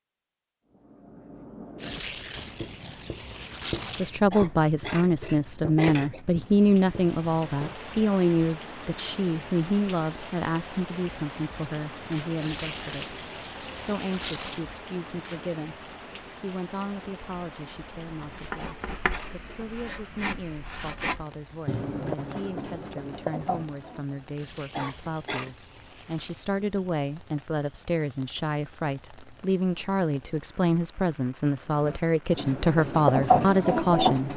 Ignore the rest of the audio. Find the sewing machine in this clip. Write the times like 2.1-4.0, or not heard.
not heard.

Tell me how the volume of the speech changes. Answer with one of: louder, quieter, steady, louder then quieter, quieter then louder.
quieter then louder.